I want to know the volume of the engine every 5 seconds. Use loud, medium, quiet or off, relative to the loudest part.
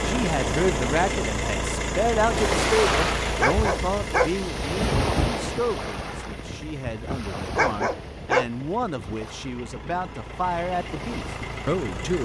loud, quiet, medium.